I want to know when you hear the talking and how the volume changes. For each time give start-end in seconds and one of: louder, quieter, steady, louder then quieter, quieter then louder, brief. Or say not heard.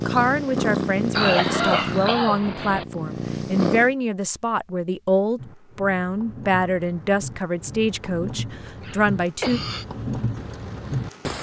0.1-9.6 steady.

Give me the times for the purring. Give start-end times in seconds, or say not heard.
0.0-4.0.